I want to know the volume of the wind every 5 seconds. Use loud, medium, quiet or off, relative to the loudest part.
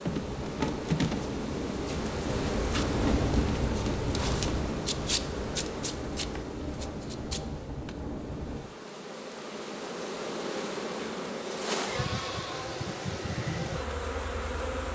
loud, medium, off.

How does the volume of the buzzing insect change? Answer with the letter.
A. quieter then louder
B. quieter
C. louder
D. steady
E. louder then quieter
A.